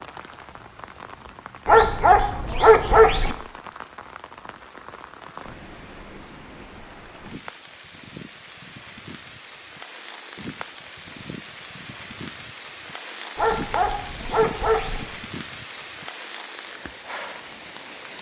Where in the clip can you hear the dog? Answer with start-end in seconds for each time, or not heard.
1.6-3.4, 13.3-15.1.